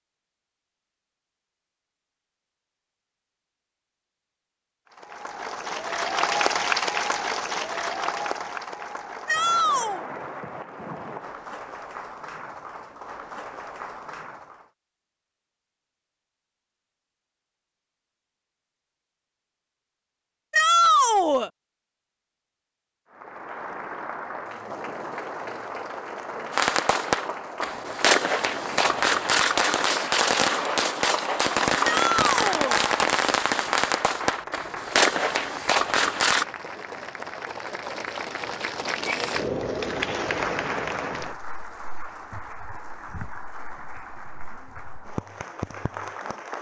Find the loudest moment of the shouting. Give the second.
21 s.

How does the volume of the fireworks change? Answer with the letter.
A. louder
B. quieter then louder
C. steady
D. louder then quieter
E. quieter
C.